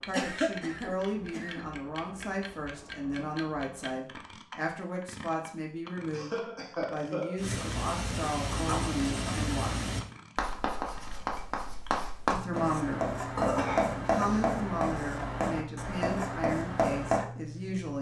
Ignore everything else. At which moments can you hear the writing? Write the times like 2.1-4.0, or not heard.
7.3-17.2.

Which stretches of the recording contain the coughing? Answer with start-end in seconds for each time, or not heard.
0.1-1.6, 6.1-7.4, 13.3-14.4.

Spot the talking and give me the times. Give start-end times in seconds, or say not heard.
0.1-9.9, 12.3-13.2, 14.1-17.9.